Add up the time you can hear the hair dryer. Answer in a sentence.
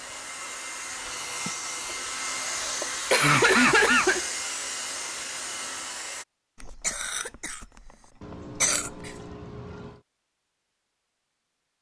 The hair dryer can be heard for 6 seconds in total.